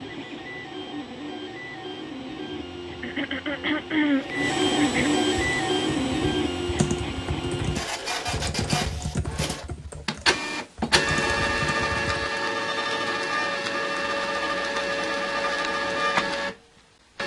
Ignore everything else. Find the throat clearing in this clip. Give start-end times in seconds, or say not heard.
3.0-5.1.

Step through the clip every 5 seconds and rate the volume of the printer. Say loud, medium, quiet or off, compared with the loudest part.
medium, loud, loud, loud.